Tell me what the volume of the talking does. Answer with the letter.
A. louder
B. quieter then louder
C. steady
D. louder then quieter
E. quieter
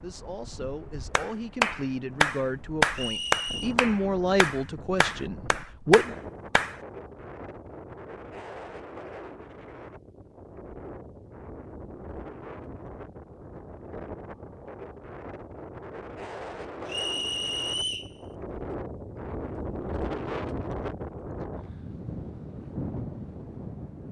D.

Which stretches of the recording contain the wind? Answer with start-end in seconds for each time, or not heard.
0.0-24.0.